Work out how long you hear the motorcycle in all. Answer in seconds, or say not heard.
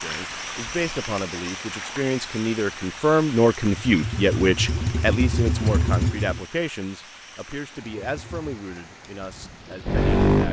5 s.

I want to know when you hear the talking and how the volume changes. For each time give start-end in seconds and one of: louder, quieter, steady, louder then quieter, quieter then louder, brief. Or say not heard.
0.0-10.4 louder then quieter.